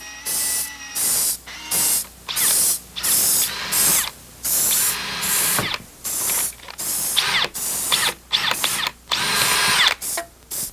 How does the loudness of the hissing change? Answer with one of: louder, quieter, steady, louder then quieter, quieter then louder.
quieter.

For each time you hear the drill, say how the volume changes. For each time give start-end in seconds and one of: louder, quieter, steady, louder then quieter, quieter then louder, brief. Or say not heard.
0.0-10.2 louder.